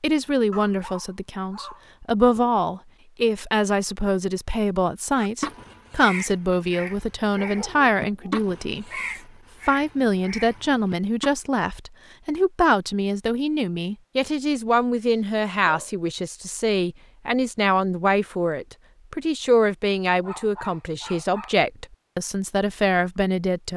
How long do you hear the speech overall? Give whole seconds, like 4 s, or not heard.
23 s.